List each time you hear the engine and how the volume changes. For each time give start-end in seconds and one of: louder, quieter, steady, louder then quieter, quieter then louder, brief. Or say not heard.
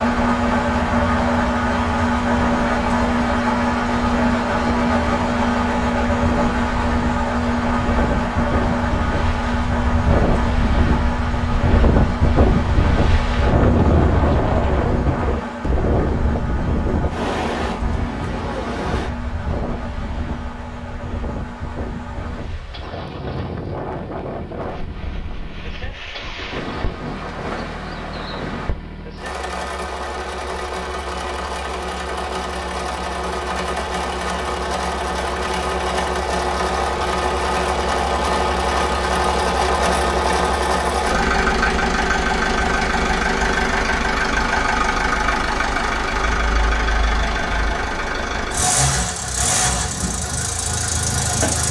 0.0-51.6 quieter then louder.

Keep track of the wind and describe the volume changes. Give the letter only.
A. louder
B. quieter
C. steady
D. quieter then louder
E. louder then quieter
E.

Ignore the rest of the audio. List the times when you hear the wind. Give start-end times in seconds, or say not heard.
0.0-28.8.